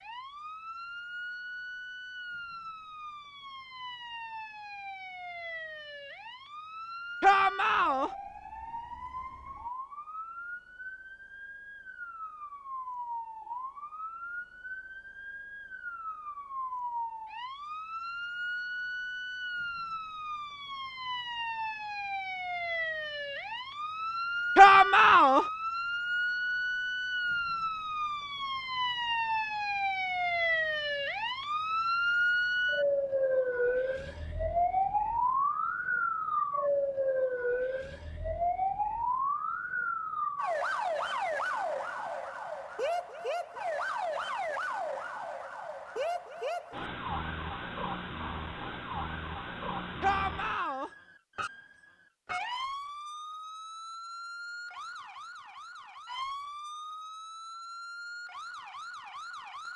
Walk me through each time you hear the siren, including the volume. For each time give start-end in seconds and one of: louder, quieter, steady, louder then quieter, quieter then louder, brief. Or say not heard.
0.0-59.7 louder then quieter.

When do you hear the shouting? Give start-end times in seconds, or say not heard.
7.2-8.1, 24.6-25.4, 50.0-50.9.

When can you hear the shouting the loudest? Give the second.
25 s.